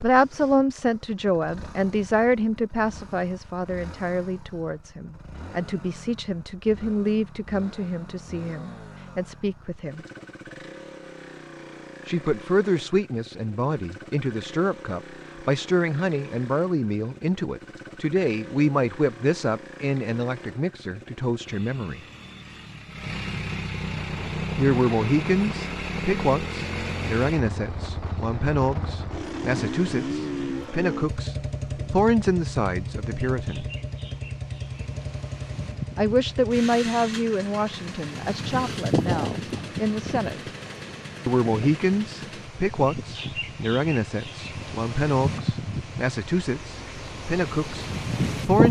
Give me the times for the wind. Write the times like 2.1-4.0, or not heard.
23.9-48.6.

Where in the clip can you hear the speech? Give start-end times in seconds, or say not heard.
0.0-10.1, 12.1-22.0, 24.6-33.6, 36.0-40.5, 41.2-48.6.